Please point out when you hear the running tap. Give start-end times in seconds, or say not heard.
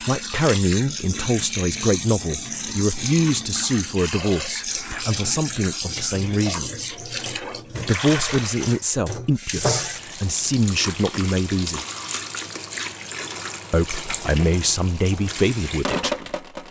0.0-16.6.